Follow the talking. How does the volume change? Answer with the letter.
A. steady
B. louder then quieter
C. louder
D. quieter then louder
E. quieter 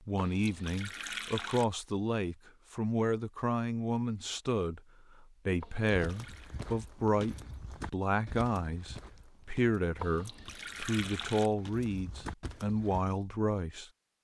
A.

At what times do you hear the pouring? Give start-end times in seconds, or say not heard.
0.1-1.6, 5.6-6.5, 9.9-11.5.